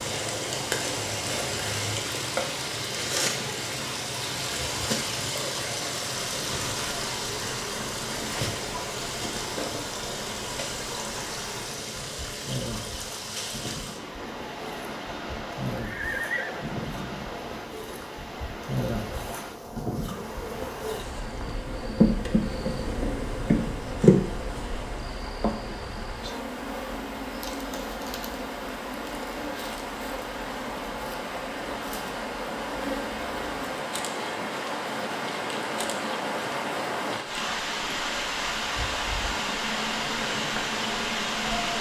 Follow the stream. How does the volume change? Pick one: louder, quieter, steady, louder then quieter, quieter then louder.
quieter then louder.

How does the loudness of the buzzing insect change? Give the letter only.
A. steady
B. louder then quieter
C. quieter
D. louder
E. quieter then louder
B.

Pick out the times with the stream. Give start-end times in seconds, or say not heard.
0.0-41.7.